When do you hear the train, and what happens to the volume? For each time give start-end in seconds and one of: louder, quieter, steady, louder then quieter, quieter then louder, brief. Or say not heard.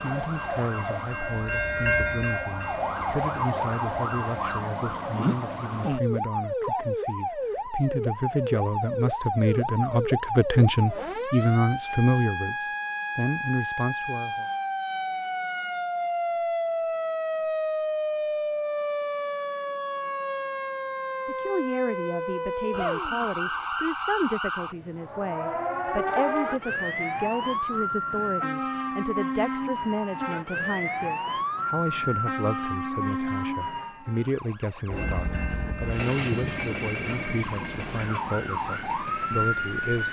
0.0-4.4 louder then quieter
34.9-40.0 quieter.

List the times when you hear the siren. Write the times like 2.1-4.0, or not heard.
0.0-40.0.